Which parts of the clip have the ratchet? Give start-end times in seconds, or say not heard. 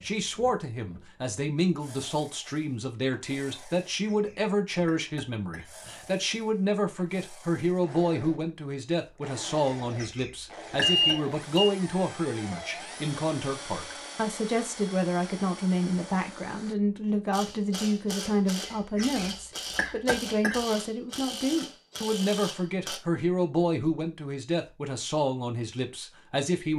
17.3-23.0.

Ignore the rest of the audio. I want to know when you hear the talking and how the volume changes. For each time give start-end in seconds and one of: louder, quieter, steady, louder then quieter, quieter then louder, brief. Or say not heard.
0.0-26.7 steady.